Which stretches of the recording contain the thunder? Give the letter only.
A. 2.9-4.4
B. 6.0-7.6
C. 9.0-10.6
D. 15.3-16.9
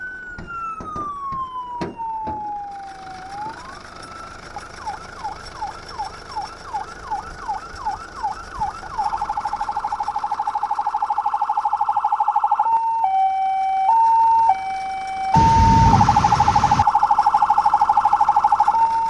D.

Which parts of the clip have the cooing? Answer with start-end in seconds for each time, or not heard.
not heard.